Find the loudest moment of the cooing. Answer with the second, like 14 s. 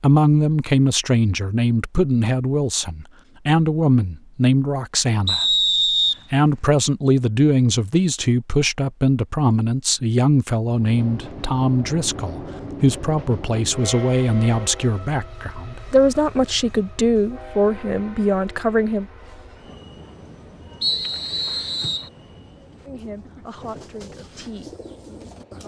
25 s.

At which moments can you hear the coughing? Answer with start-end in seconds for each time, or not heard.
not heard.